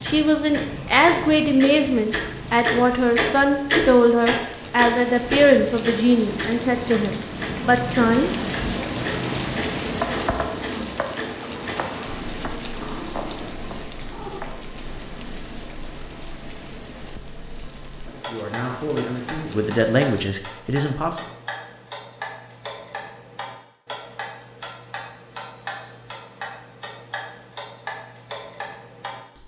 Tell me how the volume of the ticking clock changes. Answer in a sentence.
The loudness of the ticking clock goes down, then up.